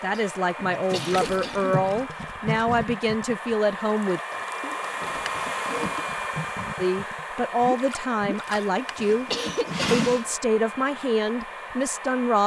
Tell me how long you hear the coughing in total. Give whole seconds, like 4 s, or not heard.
3 s.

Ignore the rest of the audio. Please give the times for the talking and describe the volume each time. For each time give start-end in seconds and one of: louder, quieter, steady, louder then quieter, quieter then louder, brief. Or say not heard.
0.0-4.2 steady
6.8-9.3 brief
9.9-12.4 brief.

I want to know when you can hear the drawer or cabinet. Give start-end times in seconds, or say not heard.
0.6-1.9, 4.8-6.0, 8.4-10.3.